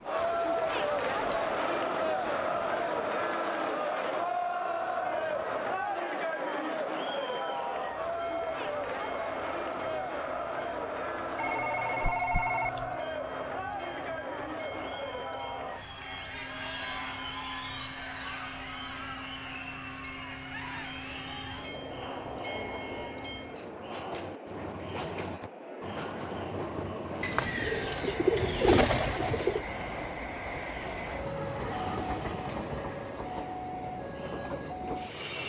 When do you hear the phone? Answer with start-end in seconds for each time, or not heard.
11.3-12.9.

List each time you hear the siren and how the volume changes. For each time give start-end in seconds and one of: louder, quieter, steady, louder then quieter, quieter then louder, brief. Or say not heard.
not heard.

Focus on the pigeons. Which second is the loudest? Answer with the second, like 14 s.
29 s.